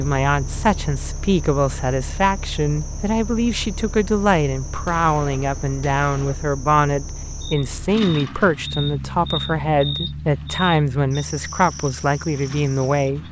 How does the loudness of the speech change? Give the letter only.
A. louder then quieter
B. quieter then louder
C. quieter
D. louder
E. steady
E.